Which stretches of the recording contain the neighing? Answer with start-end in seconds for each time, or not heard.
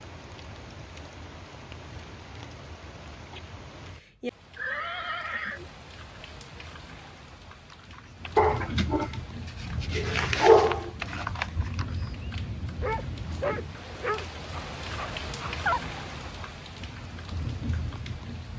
4.5-5.7.